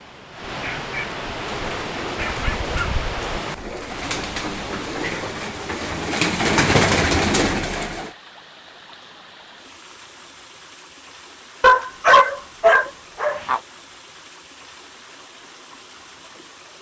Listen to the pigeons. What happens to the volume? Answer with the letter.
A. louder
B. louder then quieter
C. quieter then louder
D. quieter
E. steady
A.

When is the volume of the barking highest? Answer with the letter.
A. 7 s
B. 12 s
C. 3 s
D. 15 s
B.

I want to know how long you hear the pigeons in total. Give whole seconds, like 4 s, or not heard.
7 s.